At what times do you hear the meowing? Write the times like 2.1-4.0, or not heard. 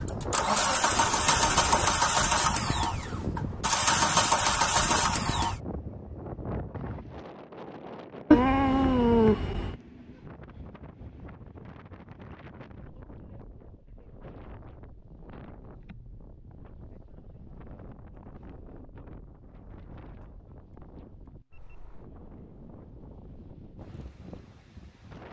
8.3-9.8.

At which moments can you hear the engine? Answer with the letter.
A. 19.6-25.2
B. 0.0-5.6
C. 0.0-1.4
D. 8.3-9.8
B.